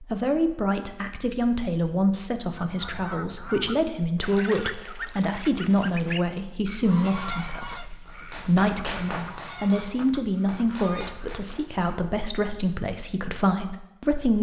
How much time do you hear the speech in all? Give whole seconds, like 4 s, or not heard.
14 s.